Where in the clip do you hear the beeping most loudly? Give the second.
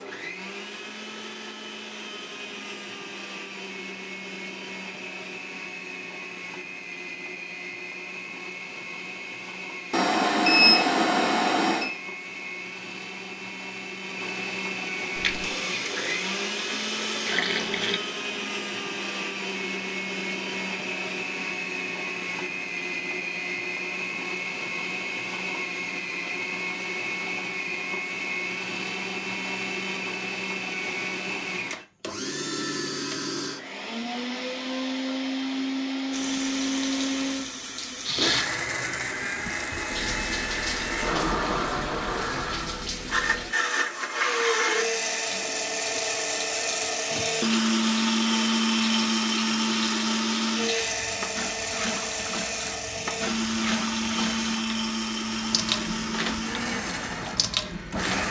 11 s.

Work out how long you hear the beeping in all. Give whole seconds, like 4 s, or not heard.
2 s.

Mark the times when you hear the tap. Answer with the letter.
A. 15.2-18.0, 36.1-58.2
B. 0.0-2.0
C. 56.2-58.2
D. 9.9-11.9
A.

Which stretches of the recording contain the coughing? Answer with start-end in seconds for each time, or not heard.
not heard.